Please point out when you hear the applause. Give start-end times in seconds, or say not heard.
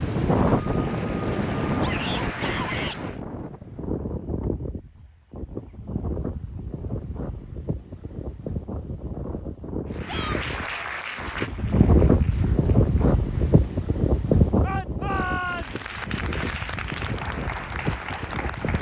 0.0-3.2, 9.9-13.8, 15.4-18.7.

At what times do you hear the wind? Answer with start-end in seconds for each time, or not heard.
0.0-18.7.